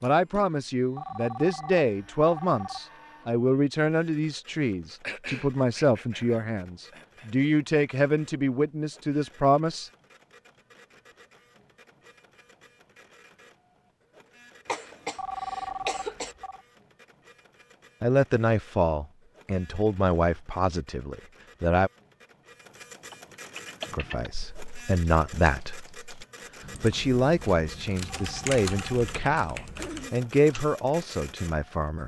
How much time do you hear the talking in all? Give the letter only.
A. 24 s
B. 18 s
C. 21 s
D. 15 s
C.